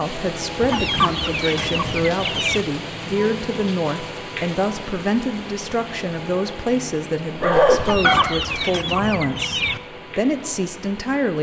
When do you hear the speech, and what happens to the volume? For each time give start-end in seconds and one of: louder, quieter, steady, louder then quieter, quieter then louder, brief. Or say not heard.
0.0-11.3 steady.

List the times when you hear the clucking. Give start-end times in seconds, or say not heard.
0.6-2.6, 7.8-9.8.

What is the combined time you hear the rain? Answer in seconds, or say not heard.
11 s.